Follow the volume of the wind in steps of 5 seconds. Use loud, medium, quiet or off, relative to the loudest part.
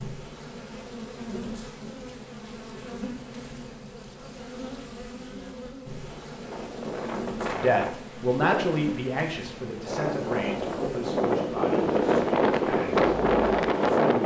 off, medium, loud.